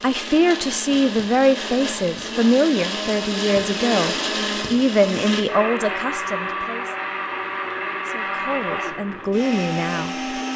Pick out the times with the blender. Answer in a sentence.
The blender can be heard from 0.0 to 10.5 s.